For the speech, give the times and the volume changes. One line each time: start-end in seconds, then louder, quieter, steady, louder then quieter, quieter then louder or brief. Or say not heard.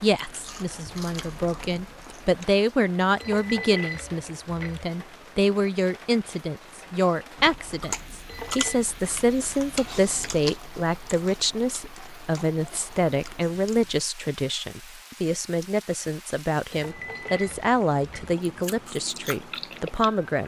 0.0-20.4 steady.